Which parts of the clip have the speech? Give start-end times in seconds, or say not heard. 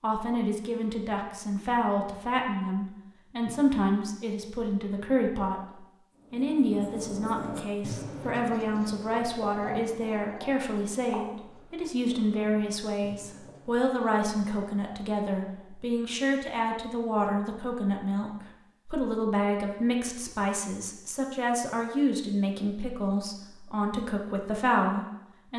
0.0-5.6, 6.3-25.5.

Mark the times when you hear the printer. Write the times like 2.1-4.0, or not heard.
not heard.